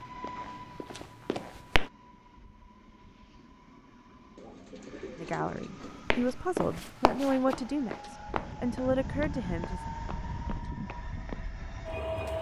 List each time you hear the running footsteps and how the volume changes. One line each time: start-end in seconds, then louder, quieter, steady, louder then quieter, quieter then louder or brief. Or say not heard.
0.0-1.9 brief
5.8-11.5 quieter.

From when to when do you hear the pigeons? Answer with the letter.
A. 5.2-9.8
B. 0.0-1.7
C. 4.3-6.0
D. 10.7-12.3
C.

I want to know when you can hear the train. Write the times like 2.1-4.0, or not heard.
0.0-12.3.